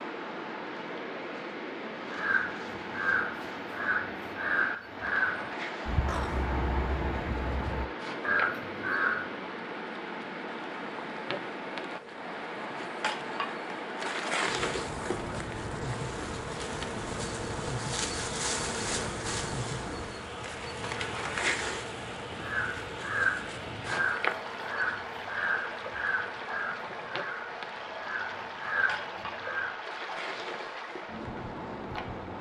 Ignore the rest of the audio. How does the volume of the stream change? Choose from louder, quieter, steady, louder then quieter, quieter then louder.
steady.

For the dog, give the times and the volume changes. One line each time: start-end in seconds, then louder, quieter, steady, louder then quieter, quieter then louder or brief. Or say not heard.
not heard.